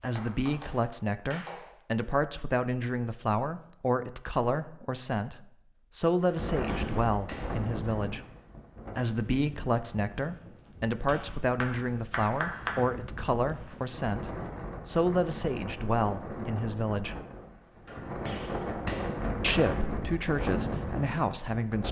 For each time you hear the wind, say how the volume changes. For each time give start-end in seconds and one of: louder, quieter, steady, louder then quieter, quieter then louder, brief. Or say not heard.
6.3-21.8 quieter then louder.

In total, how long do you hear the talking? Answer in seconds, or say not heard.
19 s.